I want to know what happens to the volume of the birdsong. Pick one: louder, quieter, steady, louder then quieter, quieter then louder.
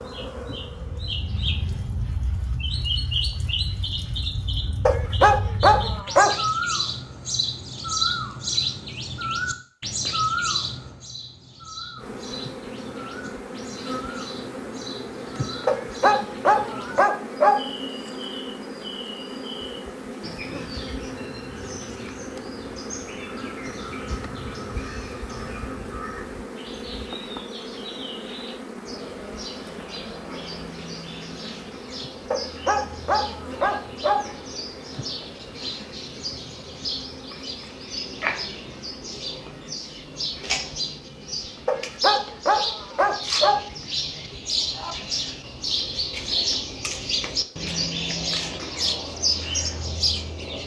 quieter then louder.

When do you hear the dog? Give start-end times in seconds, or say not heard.
4.8-6.3, 15.7-17.6, 32.3-34.2, 41.6-43.6.